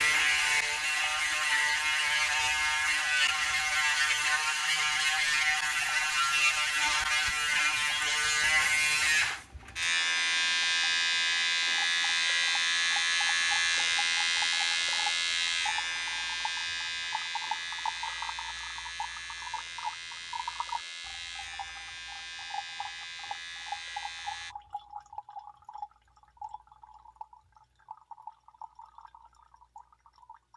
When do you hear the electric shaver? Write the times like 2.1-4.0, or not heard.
0.0-24.6.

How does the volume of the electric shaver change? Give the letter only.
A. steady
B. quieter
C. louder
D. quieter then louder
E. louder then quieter
B.